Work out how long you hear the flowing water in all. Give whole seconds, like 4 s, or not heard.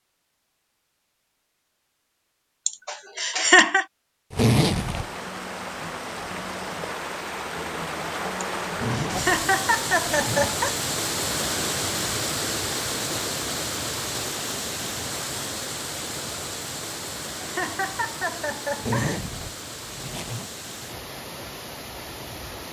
18 s.